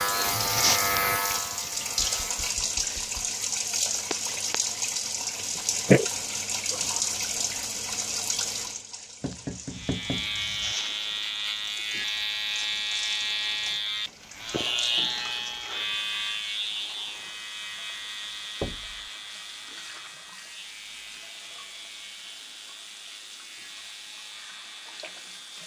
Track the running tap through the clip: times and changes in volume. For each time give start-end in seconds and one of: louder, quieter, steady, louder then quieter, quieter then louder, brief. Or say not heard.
0.0-25.6 quieter.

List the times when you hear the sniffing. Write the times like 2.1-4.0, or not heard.
5.2-6.0.